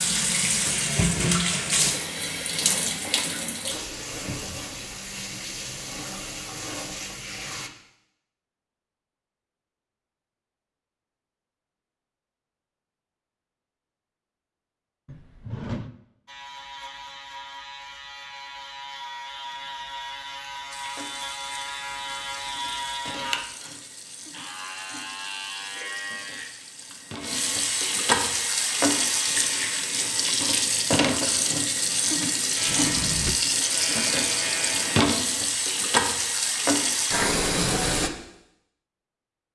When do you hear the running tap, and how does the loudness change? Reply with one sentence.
You can hear the running tap from 0.0 to 7.7 s, getting quieter; and from 20.7 to 38.1 s, getting louder.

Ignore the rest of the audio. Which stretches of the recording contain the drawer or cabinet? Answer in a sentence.
You can hear the drawer or cabinet from 4.2 to 4.7 s, from 15.1 to 15.9 s and from 32.6 to 33.4 s.